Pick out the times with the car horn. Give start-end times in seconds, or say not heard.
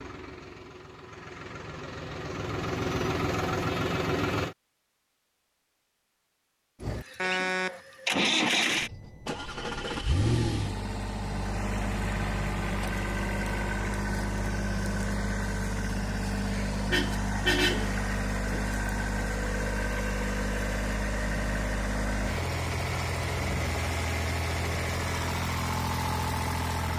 7.2-7.8, 16.9-18.0.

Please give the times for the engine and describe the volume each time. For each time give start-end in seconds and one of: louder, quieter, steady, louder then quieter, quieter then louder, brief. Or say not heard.
0.0-4.5 louder
6.8-26.9 steady.